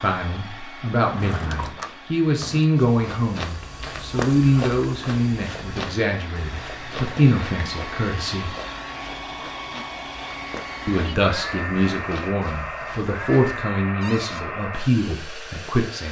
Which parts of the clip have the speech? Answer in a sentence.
You can hear the speech from 0.0 to 8.6 s and from 10.8 to 16.0 s.